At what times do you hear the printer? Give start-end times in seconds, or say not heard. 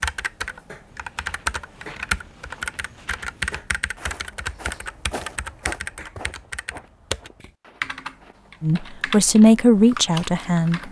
not heard.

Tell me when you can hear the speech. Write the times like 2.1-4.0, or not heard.
8.6-10.8.